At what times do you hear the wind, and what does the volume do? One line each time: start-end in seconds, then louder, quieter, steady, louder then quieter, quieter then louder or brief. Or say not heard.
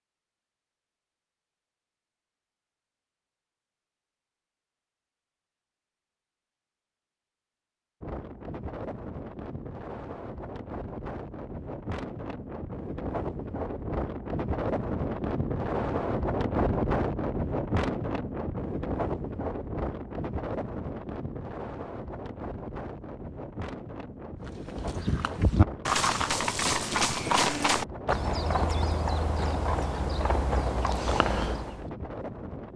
8.0-32.7 louder then quieter.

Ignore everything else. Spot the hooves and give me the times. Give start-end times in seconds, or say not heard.
24.4-31.9.